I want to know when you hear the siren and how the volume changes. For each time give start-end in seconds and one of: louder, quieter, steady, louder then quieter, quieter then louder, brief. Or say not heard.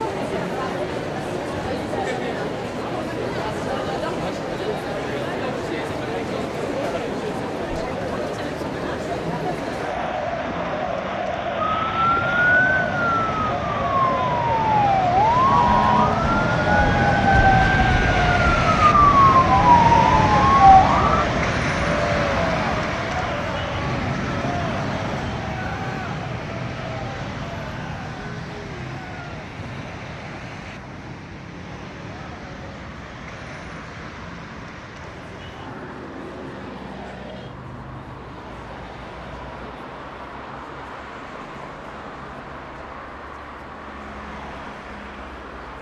11.6-21.2 louder.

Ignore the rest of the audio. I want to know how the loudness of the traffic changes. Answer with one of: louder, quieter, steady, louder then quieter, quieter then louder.
louder then quieter.